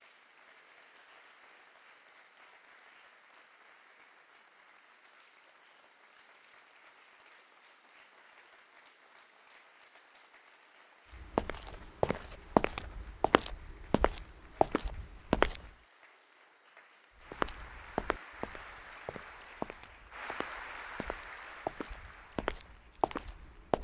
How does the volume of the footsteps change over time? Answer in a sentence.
The loudness of the footsteps goes down, then up.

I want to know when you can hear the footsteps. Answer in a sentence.
You can hear the footsteps from 11.2 to 15.7 s and from 17.3 to 23.7 s.